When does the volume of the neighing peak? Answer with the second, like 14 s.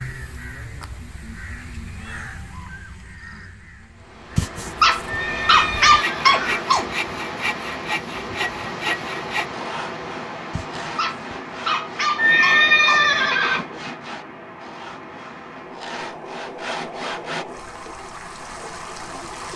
13 s.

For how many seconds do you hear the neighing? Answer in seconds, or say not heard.
3 s.